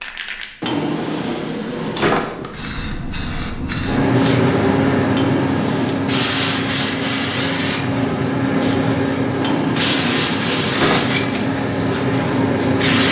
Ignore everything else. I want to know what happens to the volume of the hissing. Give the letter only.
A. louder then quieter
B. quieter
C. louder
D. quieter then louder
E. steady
C.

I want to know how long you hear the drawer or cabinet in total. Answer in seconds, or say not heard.
5 s.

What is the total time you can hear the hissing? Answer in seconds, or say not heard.
13 s.